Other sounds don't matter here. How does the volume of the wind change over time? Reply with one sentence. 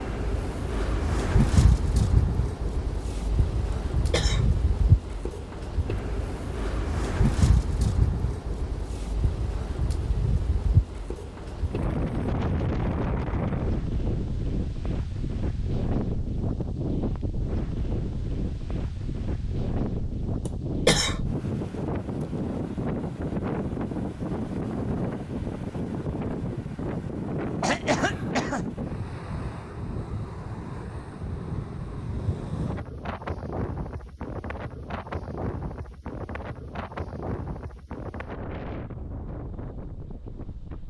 The loudness of the wind goes down.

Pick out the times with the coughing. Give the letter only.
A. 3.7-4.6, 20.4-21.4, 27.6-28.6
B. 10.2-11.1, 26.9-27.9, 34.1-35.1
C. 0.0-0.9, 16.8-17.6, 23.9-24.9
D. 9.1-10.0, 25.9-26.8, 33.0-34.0
A.